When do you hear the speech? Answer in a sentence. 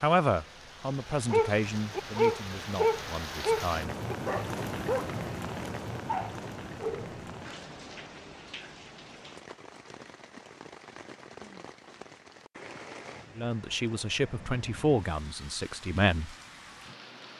You can hear the speech from 0.0 to 4.0 s and from 13.3 to 16.4 s.